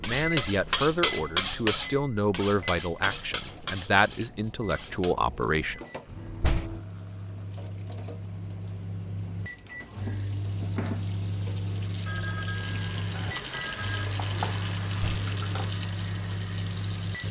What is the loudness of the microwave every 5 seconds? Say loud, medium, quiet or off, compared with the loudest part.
medium, medium, loud, loud.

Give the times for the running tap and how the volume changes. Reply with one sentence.
The running tap can be heard from 2.9 to 17.2 s, getting louder.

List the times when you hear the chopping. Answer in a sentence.
The chopping can't be heard in this clip.